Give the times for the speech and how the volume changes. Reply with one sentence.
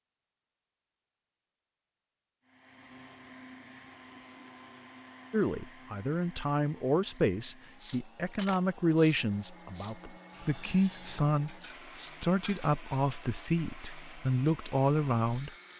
The speech can be heard from 5.3 to 15.5 s, at a steady volume.